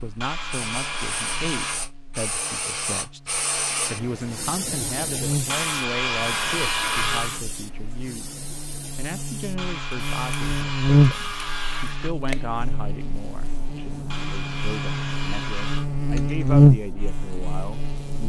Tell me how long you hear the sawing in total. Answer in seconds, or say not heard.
8 s.